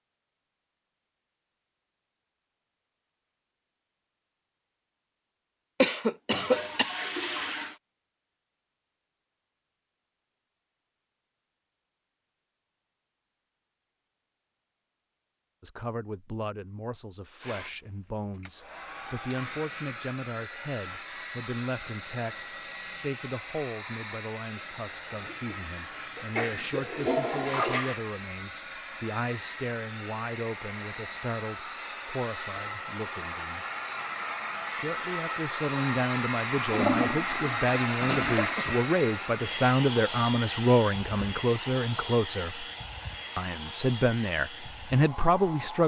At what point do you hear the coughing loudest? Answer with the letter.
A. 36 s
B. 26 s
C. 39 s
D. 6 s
D.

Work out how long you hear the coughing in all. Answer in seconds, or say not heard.
4 s.